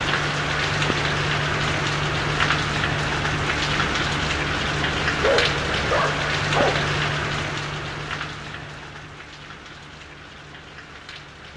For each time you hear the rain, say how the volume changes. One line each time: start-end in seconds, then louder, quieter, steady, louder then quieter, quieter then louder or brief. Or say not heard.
0.0-11.5 quieter.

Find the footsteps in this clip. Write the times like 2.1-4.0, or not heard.
not heard.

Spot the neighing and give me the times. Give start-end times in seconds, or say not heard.
not heard.